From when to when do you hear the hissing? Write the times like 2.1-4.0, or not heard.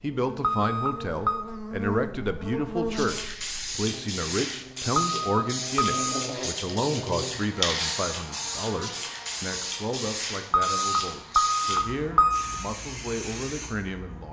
2.9-14.2.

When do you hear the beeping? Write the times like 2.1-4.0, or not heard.
0.4-1.4, 5.0-6.0, 10.5-12.6.